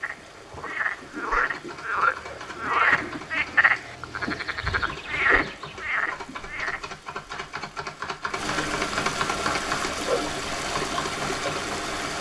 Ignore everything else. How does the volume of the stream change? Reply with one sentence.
The volume of the stream goes up.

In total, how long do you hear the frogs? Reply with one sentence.
You can hear the frogs for 7 seconds altogether.